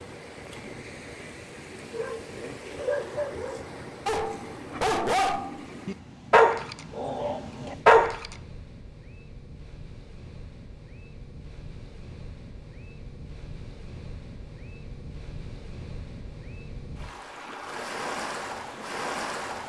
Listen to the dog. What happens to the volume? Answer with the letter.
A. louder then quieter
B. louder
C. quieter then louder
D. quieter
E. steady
B.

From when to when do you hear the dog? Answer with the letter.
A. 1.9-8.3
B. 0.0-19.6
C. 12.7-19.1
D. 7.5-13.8
A.